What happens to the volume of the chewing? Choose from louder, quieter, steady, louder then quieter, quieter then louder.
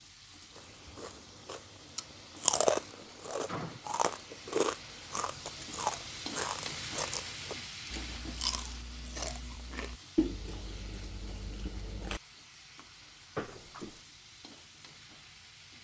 quieter.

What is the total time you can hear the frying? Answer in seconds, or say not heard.
16 s.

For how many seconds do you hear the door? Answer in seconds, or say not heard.
2 s.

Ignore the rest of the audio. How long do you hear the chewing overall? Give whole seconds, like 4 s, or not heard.
12 s.